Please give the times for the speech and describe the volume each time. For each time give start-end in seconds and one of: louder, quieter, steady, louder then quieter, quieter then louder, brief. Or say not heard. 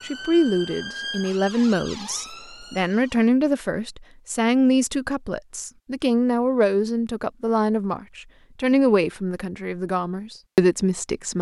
0.0-11.3 steady.